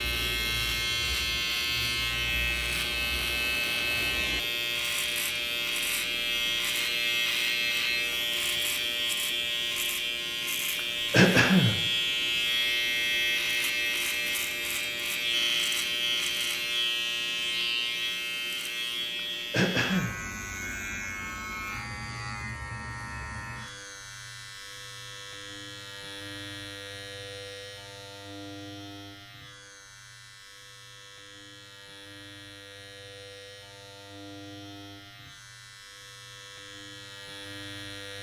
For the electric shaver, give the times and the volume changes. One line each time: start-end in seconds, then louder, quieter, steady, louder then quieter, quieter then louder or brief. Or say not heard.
0.0-38.1 quieter.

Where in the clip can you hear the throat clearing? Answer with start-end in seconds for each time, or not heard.
11.1-11.8, 19.5-20.1.